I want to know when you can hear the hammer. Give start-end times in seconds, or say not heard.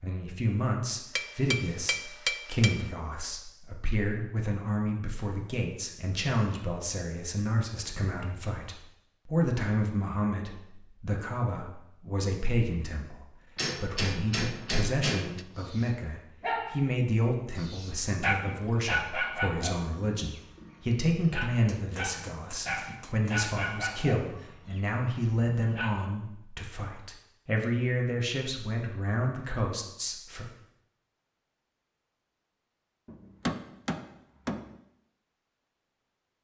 1.1-2.8, 13.6-15.4, 21.4-23.4, 33.0-34.8.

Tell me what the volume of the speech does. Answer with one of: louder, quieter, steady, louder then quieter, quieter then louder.
steady.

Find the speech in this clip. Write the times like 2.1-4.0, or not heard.
0.0-30.4.